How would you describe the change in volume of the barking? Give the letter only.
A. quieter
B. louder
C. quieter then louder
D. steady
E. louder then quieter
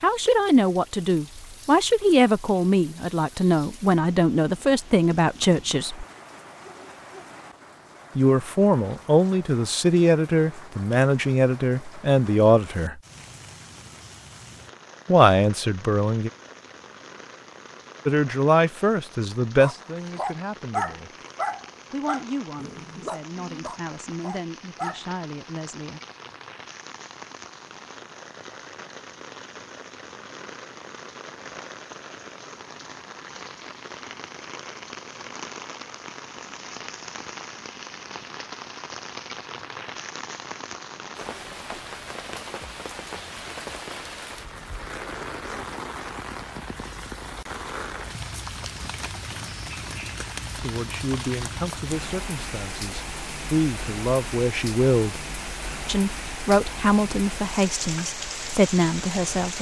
A.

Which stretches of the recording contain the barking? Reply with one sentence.
The barking can be heard from 19.6 to 25.0 s.